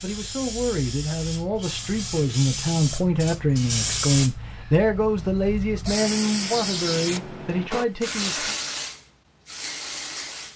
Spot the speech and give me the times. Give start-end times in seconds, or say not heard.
0.0-8.6.